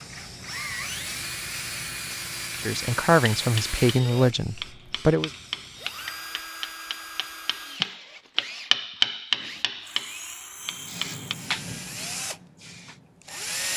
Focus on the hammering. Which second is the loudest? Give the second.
9 s.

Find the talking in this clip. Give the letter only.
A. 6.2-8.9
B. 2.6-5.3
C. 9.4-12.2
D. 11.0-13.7
B.